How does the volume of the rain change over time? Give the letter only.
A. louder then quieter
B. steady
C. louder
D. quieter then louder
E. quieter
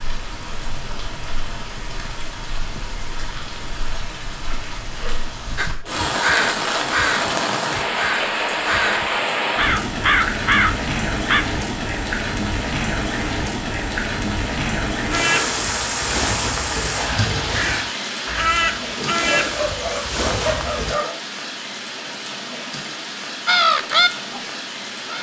A.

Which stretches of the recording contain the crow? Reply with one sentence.
The crow can be heard from 5.5 to 11.4 s, from 15.1 to 20.9 s and from 23.4 to 25.1 s.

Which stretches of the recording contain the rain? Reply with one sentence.
The rain can be heard from 0.0 to 25.1 s.